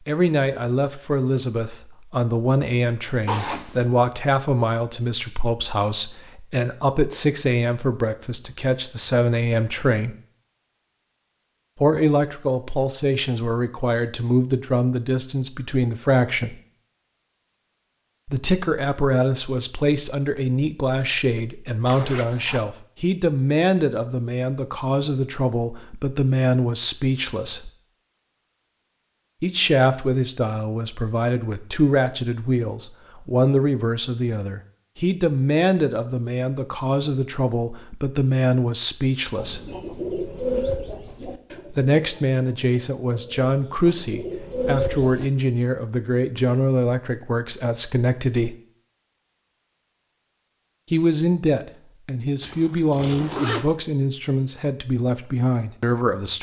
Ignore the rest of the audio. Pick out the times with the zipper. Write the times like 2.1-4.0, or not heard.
3.2-3.9, 21.9-22.6, 52.4-53.8.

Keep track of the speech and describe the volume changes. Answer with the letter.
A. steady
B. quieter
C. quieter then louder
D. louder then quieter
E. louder
A.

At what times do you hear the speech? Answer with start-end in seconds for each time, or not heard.
0.1-10.2, 11.8-16.6, 18.2-27.7, 29.4-39.7, 41.7-48.5, 50.9-56.3.